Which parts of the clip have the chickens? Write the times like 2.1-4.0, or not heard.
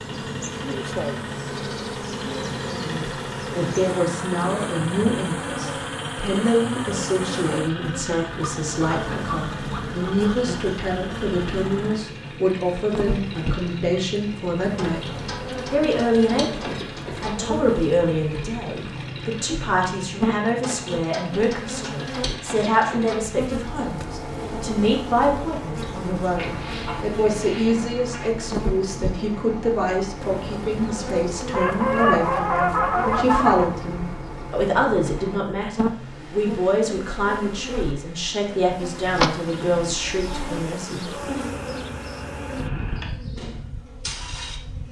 8.3-10.3, 26.4-28.3, 31.5-33.6.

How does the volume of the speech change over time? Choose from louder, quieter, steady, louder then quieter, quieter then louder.
steady.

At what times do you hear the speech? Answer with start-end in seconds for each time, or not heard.
2.8-41.4.